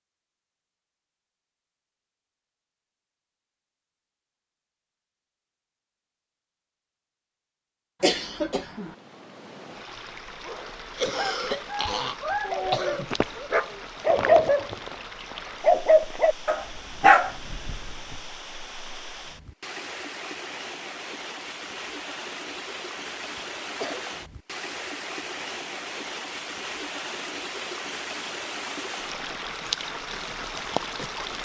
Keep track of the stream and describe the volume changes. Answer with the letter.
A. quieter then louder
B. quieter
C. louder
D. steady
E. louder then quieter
C.